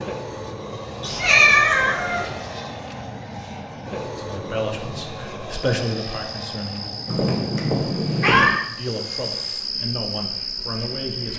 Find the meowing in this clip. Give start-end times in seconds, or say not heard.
1.0-2.3, 7.0-8.6.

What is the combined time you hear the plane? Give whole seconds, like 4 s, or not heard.
11 s.